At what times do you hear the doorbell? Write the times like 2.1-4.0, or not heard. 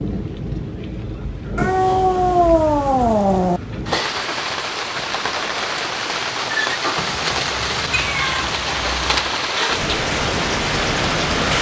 not heard.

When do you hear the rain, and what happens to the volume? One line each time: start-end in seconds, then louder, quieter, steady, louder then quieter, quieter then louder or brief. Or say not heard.
0.0-11.5 louder.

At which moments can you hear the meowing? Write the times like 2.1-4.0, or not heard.
1.6-3.6, 7.0-9.3.